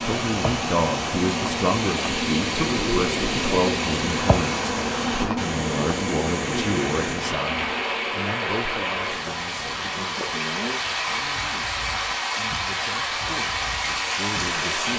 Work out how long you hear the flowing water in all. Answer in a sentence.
The flowing water can be heard for 15 seconds in total.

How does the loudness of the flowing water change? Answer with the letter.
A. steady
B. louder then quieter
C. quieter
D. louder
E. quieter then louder
A.